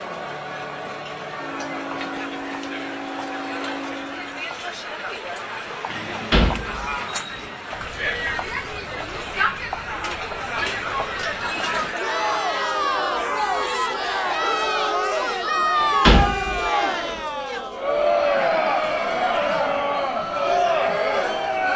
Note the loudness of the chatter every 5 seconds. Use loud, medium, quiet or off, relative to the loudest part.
medium, medium, loud, loud, loud.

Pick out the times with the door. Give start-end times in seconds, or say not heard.
6.3-7.4, 15.8-17.1.